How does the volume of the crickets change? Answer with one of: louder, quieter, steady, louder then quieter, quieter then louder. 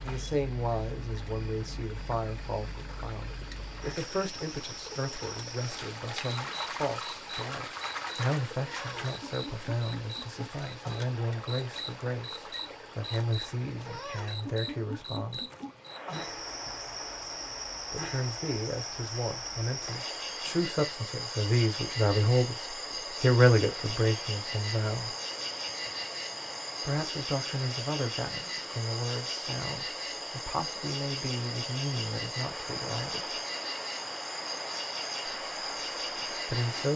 louder.